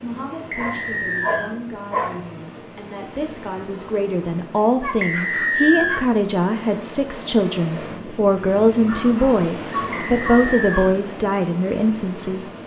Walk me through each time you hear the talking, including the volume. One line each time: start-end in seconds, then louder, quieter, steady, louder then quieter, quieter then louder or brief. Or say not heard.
0.0-12.4 louder.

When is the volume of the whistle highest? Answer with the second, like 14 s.
6 s.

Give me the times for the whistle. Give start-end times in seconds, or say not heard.
0.5-1.6, 5.0-6.0, 9.9-10.9.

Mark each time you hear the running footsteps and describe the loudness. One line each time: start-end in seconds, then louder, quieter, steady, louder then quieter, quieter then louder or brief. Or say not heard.
not heard.